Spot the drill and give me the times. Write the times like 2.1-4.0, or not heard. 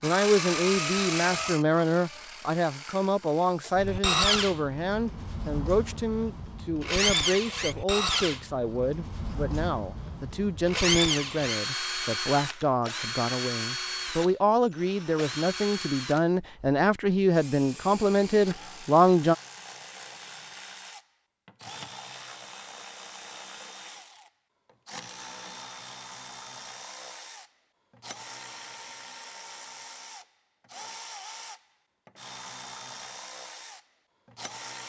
0.0-34.8.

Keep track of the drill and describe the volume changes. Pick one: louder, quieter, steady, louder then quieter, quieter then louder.
quieter.